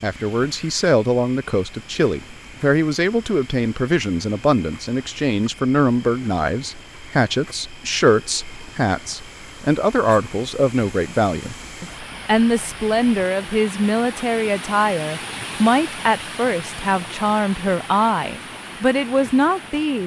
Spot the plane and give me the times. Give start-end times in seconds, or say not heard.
not heard.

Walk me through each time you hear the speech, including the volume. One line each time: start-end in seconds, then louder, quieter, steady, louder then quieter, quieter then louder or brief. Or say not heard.
0.0-20.0 steady.